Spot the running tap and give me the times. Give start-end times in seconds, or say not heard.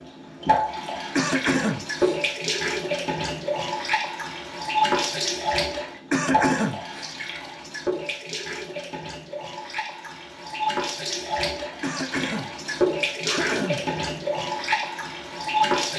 0.0-15.9.